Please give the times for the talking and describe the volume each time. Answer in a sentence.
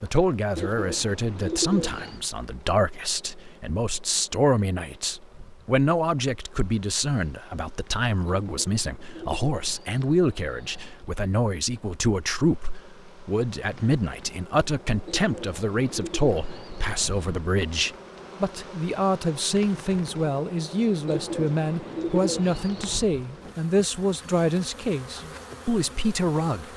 You can hear the talking from 0.0 to 26.7 s, at a steady volume.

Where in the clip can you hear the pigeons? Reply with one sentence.
You can hear the pigeons from 0.6 to 2.2 s, from 8.2 to 11.0 s, from 15.1 to 17.2 s and from 21.1 to 23.0 s.